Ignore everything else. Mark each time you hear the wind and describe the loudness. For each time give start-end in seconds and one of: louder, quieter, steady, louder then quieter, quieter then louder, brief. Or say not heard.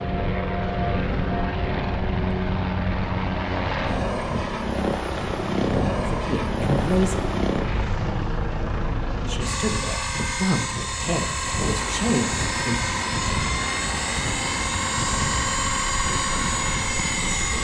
0.0-17.5 steady.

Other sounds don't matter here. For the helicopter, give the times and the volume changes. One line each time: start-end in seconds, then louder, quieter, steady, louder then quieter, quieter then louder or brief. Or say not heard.
0.0-17.5 steady.